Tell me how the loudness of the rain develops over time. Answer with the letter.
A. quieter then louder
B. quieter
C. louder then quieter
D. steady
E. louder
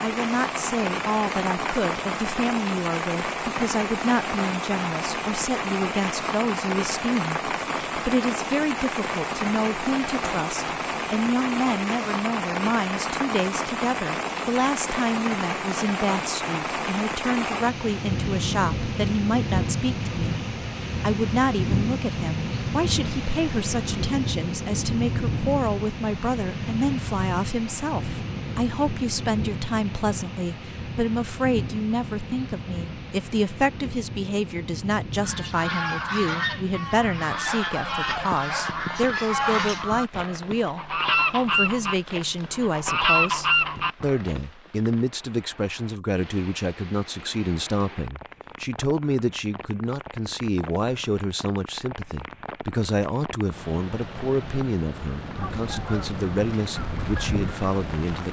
B.